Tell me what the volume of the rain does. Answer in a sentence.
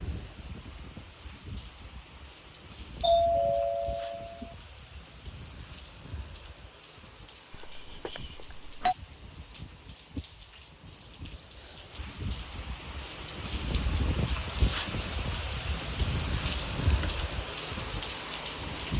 The loudness of the rain goes up.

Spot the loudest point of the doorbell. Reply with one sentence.
The loudest moment of the doorbell is at 3 seconds.